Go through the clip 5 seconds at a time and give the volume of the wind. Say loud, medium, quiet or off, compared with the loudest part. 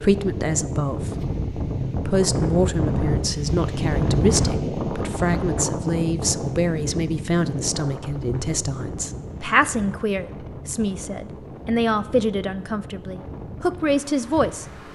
loud, medium, quiet.